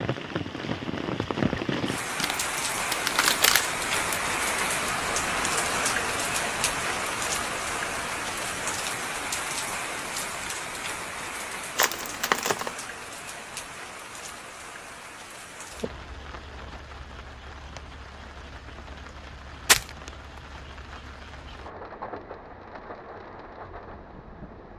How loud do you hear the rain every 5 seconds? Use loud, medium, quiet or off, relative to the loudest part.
loud, loud, medium, quiet, quiet.